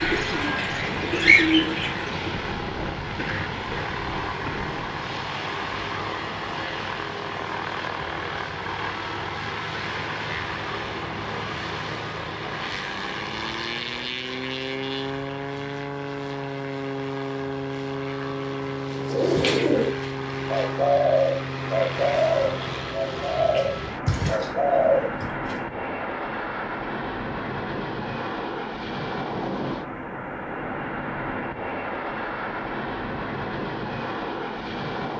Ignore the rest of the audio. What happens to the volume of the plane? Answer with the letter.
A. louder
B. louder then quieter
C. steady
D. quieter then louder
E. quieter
C.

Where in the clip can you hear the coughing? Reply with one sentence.
You can hear the coughing from 2.3 to 4.8 s.